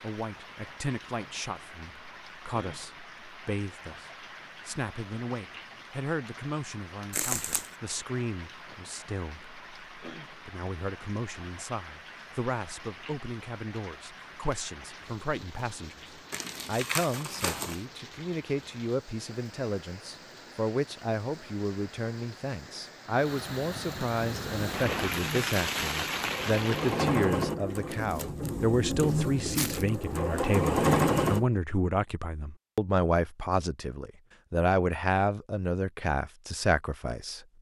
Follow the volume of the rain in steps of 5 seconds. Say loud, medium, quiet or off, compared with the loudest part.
quiet, quiet, quiet, quiet, medium, loud, off, off.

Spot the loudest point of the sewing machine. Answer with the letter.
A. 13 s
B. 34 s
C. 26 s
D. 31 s
D.